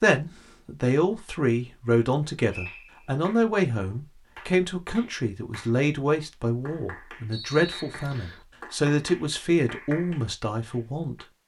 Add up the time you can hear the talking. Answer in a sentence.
You can hear the talking for 11 seconds altogether.